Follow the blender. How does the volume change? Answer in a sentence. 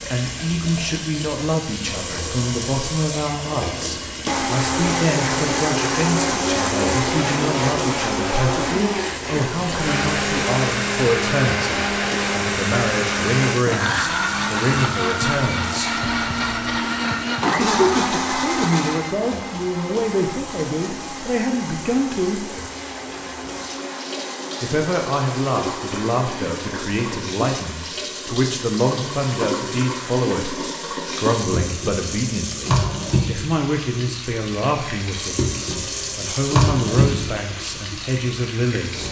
The volume of the blender goes down.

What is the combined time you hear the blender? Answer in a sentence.
The blender can be heard for 23 seconds in total.